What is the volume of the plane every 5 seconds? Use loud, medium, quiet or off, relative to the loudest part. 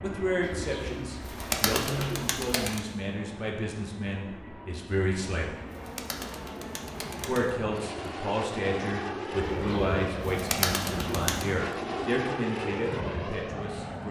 medium, loud, loud.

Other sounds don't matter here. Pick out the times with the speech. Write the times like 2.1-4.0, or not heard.
0.0-5.5, 7.2-14.0.